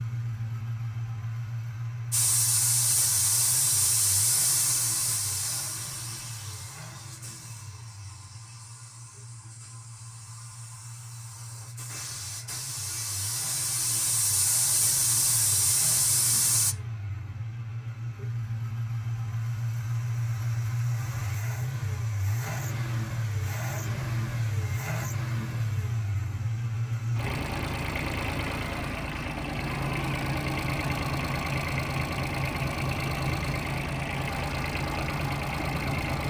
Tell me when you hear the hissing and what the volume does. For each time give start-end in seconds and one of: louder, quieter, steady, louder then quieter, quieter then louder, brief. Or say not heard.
2.1-16.8 quieter then louder.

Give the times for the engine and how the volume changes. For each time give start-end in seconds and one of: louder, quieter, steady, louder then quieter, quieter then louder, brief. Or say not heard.
0.0-36.2 quieter then louder.